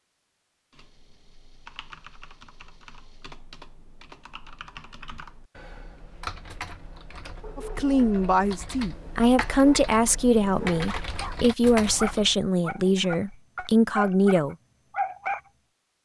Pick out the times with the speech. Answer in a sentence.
The speech can be heard from 7.5 to 14.6 s.